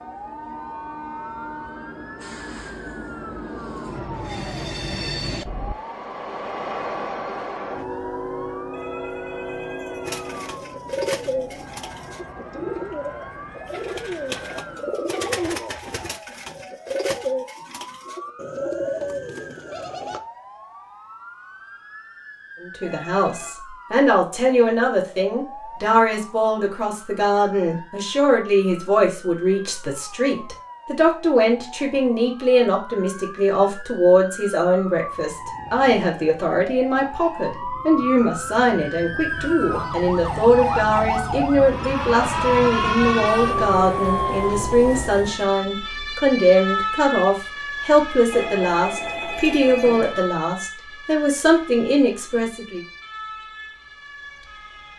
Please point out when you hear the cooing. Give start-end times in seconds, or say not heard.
10.1-20.2.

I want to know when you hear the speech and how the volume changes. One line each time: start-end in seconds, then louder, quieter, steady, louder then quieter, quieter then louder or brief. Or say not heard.
22.6-52.8 steady.